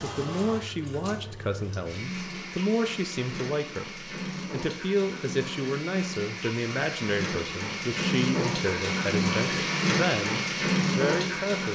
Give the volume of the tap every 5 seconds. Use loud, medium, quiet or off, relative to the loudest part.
medium, loud, loud.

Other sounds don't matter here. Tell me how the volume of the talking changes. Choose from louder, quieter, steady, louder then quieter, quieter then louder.
steady.